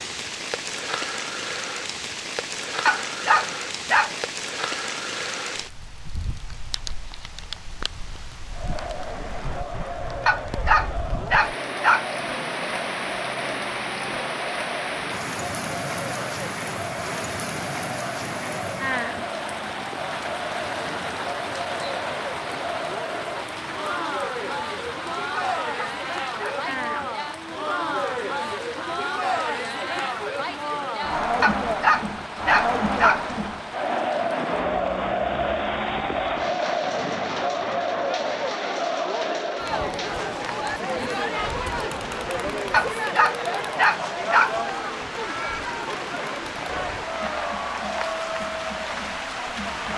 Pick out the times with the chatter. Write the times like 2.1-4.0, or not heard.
8.5-49.9.